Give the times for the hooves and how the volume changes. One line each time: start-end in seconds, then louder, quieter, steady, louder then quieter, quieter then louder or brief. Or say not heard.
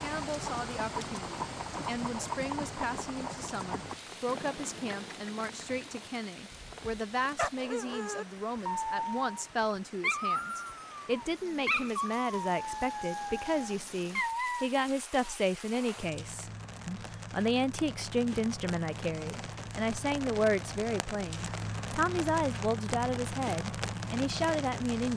0.0-7.1 quieter.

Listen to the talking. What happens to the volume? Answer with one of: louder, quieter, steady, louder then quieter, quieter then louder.
louder.